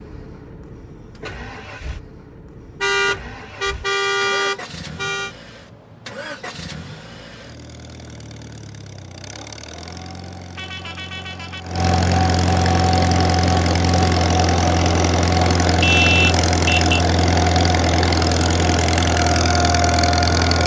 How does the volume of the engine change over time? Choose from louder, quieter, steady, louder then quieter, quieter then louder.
louder.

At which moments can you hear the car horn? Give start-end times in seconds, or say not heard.
2.8-5.3, 10.6-11.7, 15.8-17.1.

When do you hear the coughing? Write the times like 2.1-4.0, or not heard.
not heard.